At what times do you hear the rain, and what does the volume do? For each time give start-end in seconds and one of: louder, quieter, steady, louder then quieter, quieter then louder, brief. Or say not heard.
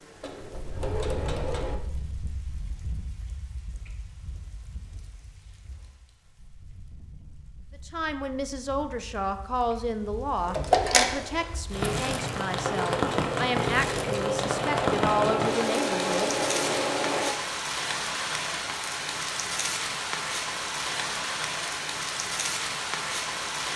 0.0-23.7 quieter then louder.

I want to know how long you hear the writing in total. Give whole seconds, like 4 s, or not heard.
not heard.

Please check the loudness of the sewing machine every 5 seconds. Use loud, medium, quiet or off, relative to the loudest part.
medium, off, loud, loud, off.